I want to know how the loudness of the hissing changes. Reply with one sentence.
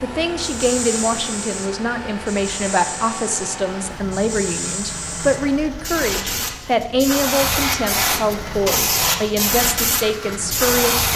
The volume of the hissing goes up.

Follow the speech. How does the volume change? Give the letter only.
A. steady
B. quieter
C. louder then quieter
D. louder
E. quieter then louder
A.